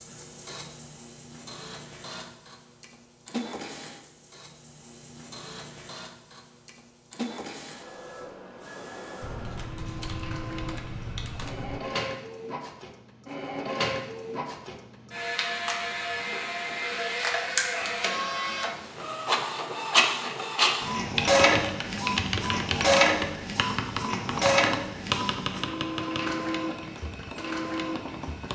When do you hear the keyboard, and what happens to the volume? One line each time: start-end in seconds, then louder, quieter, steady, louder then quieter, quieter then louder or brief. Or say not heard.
9.2-11.8 brief
21.1-28.5 quieter.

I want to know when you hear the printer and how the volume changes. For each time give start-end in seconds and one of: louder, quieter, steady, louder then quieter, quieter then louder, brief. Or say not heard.
0.0-28.5 louder.